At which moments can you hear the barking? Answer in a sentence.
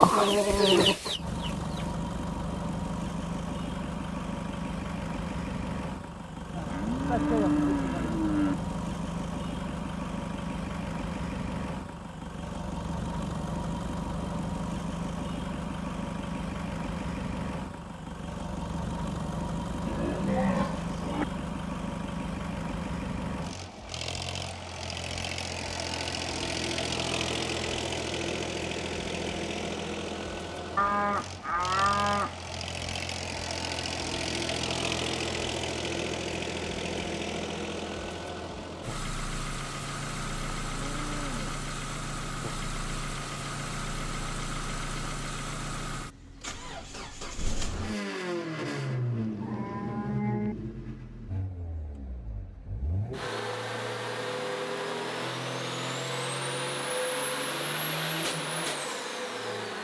The barking can't be heard in this clip.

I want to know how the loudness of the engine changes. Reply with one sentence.
The volume of the engine stays about the same.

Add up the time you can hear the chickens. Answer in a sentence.
The chickens can be heard for 2 seconds in total.